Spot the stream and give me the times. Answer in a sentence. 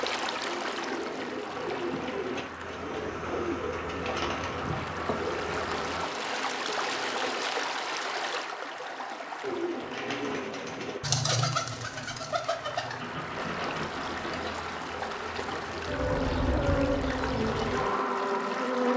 You can hear the stream from 0.0 to 18.9 s.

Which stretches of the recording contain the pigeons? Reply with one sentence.
You can hear the pigeons from 0.0 to 7.4 s and from 9.4 to 14.6 s.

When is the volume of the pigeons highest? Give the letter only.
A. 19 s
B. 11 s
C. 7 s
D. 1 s
B.